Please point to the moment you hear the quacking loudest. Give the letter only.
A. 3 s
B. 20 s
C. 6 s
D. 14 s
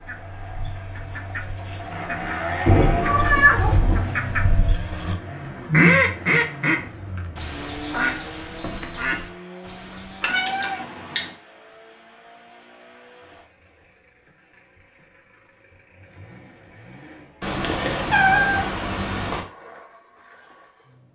C.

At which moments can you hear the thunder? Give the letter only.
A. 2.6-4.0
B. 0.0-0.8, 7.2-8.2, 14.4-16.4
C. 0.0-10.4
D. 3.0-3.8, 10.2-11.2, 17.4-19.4
A.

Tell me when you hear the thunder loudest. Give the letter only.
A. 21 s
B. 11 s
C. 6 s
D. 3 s
D.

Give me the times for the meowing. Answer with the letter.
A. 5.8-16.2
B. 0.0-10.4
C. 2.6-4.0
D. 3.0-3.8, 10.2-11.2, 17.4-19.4
D.